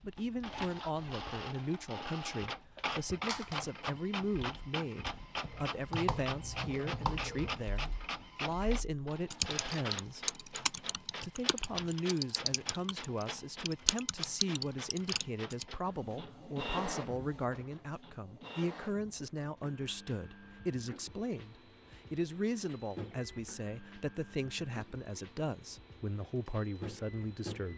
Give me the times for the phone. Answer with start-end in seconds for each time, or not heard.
3.2-3.7.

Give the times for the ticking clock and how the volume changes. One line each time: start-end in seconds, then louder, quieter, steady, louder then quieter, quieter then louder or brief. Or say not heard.
not heard.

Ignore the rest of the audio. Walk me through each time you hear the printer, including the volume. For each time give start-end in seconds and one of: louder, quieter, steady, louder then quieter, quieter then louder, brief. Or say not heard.
0.0-27.7 quieter.